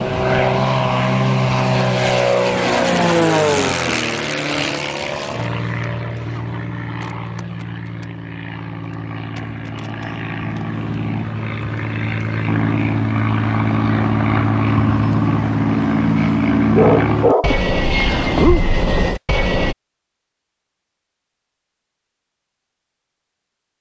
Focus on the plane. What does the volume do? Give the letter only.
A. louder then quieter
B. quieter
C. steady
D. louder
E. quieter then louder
E.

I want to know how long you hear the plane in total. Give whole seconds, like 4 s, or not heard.
20 s.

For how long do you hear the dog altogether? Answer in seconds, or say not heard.
2 s.